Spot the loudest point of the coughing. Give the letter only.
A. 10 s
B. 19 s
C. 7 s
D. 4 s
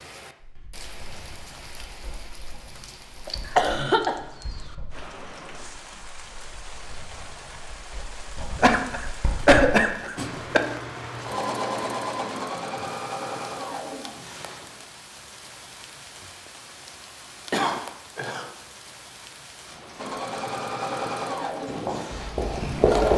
A.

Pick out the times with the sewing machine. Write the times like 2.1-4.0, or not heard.
10.2-14.7, 19.9-23.1.